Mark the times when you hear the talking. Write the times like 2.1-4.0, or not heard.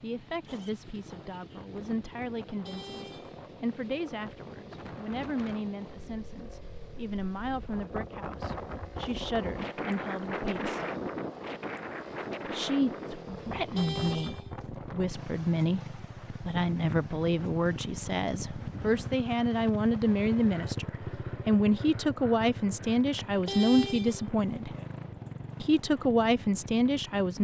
0.0-10.8, 12.4-24.7, 25.6-27.4.